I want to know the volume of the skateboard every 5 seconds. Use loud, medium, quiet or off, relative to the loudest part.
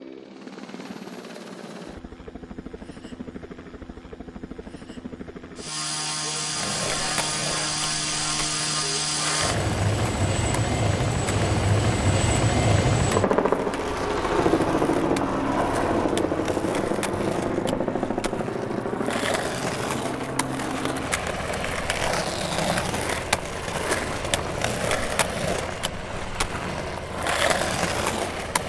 off, medium, medium, medium, loud, loud.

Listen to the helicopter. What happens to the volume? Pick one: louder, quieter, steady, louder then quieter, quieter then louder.
louder then quieter.